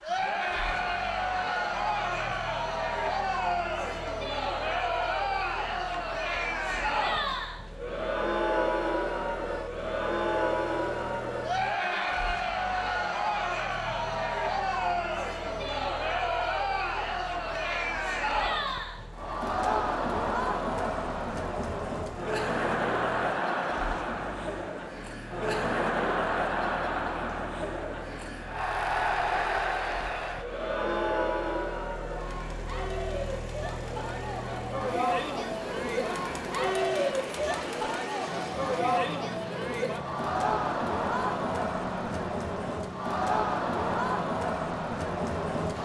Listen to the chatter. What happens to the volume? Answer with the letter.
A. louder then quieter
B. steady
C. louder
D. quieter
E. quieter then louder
B.